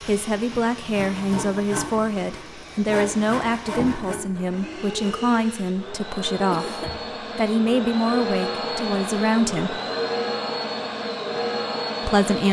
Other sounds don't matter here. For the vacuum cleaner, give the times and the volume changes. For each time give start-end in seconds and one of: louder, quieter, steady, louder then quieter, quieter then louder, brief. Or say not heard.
0.0-12.4 louder.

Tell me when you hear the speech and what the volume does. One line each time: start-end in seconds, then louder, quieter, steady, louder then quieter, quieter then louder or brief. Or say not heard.
0.1-9.8 steady
12.0-12.4 brief.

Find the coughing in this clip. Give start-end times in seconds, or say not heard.
6.5-7.0.